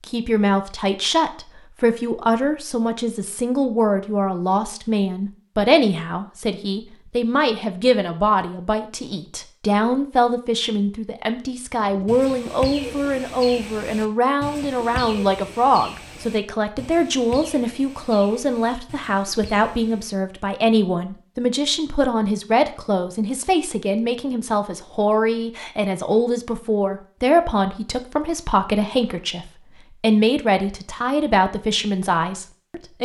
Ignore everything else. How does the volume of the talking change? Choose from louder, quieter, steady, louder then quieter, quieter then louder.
steady.